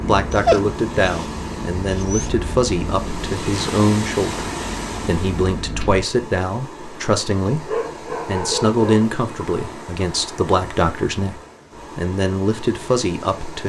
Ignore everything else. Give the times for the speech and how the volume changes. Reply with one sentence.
You can hear the speech from 0.1 to 13.6 s, at a steady volume.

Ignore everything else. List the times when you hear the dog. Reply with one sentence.
You can hear the dog from 0.3 to 2.3 s and from 7.7 to 9.1 s.